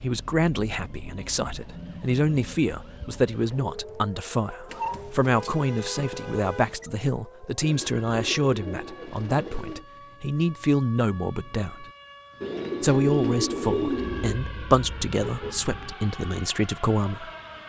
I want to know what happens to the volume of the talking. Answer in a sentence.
The volume of the talking stays about the same.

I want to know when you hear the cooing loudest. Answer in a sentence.
The loudest moment of the cooing is at 14 seconds.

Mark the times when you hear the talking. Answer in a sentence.
You can hear the talking from 0.0 to 11.8 s and from 12.8 to 17.3 s.